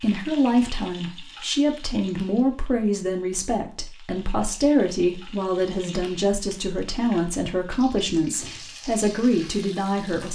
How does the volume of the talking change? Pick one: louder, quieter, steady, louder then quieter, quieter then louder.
steady.